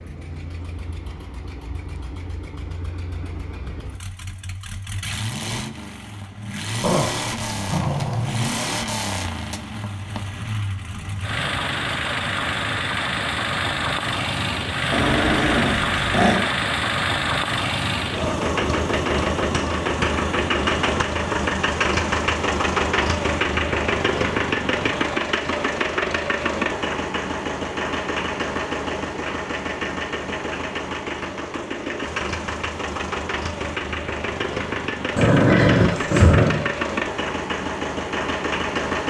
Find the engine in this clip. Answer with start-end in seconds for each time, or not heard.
0.0-39.0.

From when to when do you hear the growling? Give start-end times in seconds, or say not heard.
6.8-8.6, 14.9-16.4, 35.1-36.6.